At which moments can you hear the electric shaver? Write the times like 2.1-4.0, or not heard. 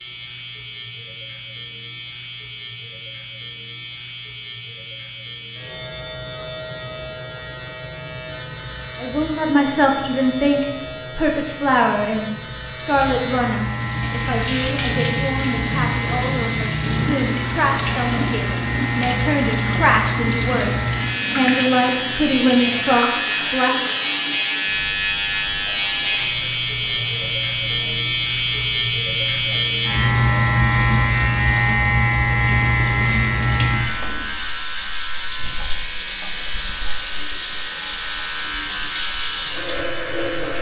0.0-40.5.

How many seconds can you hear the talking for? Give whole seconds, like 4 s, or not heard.
15 s.